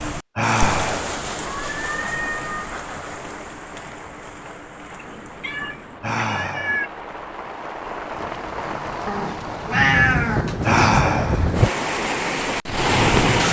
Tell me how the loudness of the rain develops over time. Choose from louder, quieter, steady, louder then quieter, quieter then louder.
quieter then louder.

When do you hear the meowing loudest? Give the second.
10 s.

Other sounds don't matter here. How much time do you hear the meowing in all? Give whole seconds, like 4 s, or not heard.
5 s.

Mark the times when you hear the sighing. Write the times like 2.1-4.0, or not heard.
0.3-1.1, 6.0-6.8, 10.7-11.4.